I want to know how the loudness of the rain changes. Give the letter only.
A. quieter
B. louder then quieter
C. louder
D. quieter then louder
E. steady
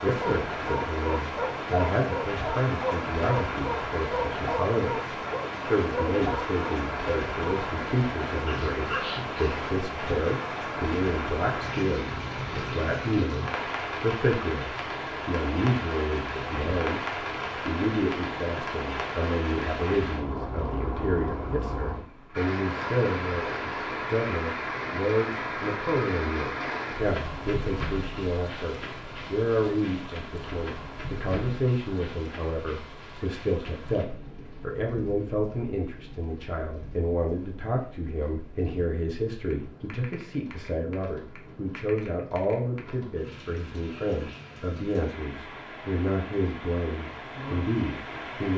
A.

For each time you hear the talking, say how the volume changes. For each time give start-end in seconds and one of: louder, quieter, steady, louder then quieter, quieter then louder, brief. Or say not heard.
0.0-5.0 louder then quieter
5.7-48.5 steady.